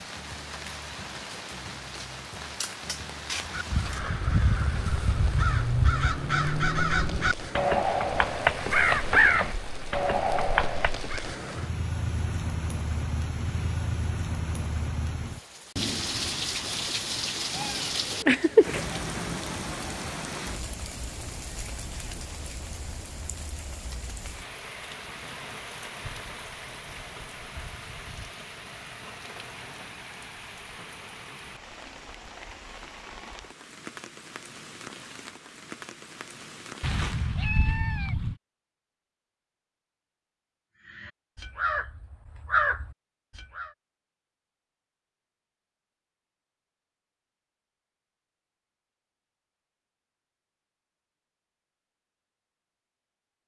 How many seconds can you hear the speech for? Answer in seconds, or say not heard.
not heard.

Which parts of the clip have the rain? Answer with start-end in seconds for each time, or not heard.
0.0-37.4.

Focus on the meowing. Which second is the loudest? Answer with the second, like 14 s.
18 s.